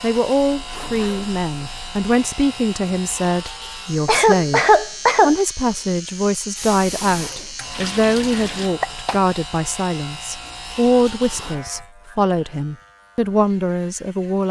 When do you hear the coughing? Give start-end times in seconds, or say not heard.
4.0-5.3, 8.3-9.2.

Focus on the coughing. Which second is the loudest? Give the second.
5 s.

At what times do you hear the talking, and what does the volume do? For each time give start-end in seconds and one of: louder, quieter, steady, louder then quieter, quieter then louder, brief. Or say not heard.
0.0-14.4 steady.